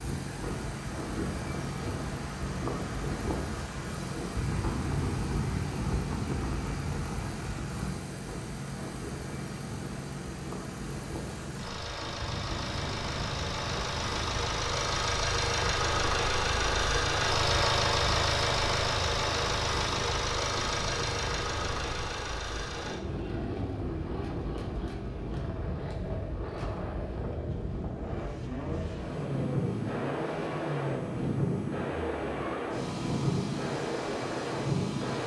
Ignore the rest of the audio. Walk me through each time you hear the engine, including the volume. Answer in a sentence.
The engine can be heard from 0.0 to 35.2 s, getting louder then quieter.